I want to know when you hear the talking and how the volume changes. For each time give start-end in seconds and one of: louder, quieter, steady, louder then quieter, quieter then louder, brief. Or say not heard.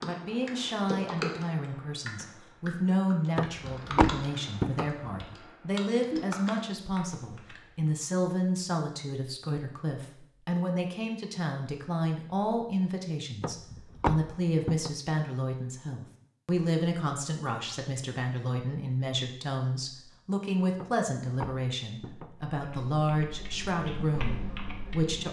0.0-25.2 steady.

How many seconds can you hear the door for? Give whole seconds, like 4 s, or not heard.
5 s.